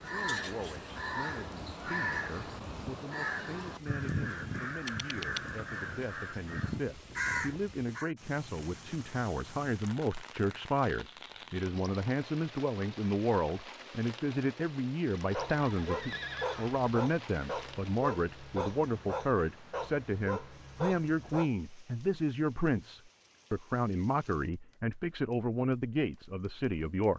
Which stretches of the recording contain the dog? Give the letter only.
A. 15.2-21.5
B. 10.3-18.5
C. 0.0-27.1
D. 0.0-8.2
A.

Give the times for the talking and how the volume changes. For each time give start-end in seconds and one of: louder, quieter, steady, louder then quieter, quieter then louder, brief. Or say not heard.
0.0-27.1 louder.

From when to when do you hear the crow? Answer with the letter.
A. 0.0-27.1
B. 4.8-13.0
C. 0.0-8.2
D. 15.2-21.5
C.